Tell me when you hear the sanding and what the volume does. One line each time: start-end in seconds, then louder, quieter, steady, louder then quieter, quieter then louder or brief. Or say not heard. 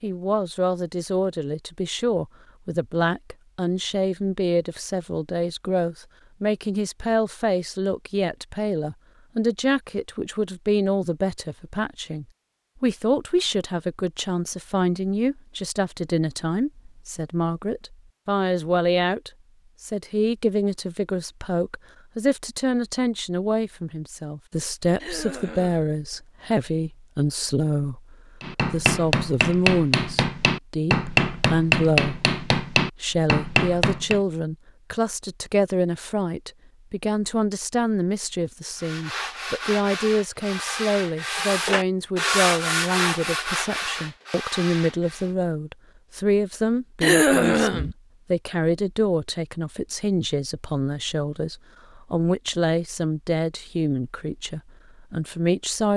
38.8-45.4 louder then quieter.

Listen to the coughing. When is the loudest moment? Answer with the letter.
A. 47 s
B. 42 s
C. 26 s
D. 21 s
A.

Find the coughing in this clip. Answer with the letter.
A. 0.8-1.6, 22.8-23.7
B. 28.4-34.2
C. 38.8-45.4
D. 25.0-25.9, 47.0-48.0
D.